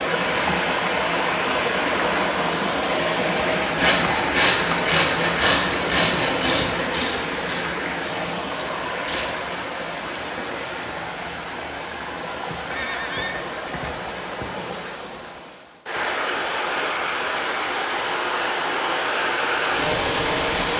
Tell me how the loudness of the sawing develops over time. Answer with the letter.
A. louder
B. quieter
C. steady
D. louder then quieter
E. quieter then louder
B.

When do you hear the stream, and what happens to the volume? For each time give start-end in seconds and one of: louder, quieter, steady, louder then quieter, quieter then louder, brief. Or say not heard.
0.0-20.7 quieter then louder.